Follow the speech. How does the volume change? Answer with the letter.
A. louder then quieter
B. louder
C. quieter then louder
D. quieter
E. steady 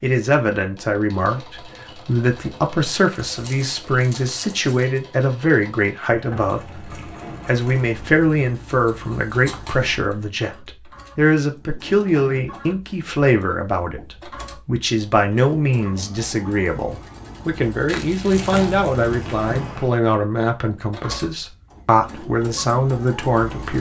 E.